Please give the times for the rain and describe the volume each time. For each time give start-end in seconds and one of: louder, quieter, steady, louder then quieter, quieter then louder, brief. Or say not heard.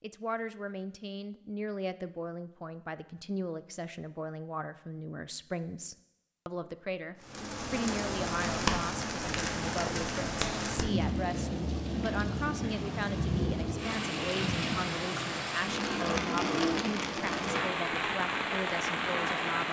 7.2-19.6 steady.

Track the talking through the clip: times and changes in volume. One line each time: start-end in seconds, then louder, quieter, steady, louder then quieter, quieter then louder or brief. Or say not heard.
0.0-19.6 steady.